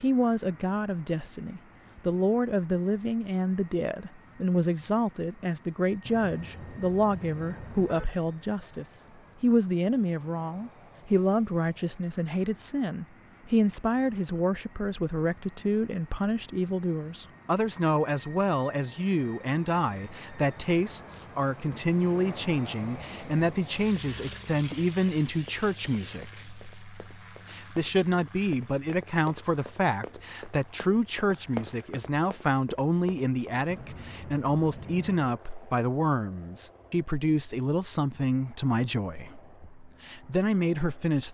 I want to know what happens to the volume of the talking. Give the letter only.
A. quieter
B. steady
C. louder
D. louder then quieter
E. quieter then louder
B.